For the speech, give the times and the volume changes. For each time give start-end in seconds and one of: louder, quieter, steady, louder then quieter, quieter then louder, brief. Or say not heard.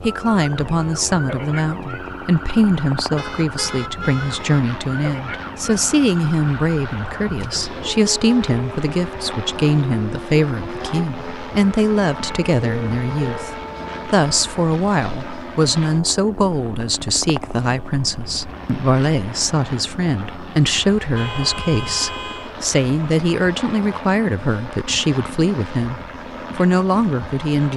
0.0-27.7 steady.